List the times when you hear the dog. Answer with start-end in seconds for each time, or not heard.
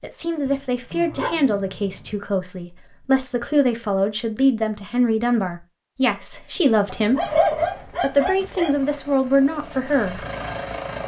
0.5-2.1, 6.8-8.8.